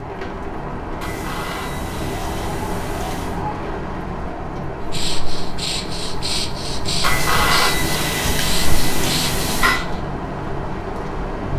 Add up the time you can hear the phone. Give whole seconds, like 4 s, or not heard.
5 s.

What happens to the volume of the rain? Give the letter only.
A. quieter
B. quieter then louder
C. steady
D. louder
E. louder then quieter
C.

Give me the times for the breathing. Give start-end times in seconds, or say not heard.
4.8-10.0.